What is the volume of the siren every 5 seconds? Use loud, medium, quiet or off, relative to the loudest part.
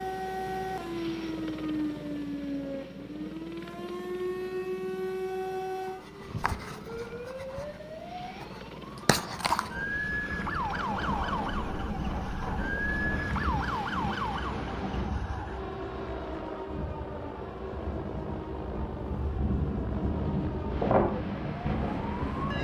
loud, loud, loud, medium, medium.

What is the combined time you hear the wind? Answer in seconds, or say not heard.
13 s.